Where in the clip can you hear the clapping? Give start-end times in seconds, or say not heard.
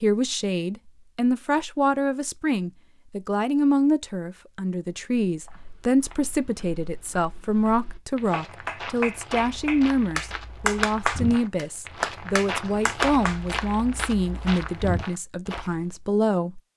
8.3-13.4.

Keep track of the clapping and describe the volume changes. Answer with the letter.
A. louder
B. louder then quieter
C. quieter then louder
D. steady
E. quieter
B.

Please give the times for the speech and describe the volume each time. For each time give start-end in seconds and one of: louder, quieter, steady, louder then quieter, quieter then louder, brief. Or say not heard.
0.0-16.6 steady.